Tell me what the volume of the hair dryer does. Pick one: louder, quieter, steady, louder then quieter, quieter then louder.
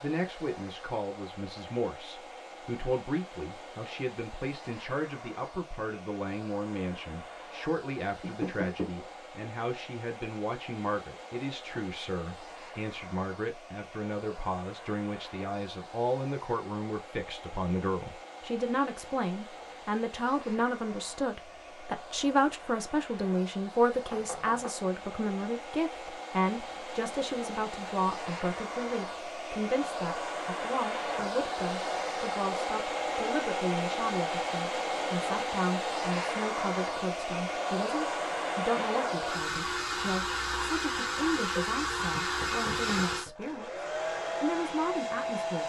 louder.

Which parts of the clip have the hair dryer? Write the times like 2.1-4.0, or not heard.
0.0-45.6.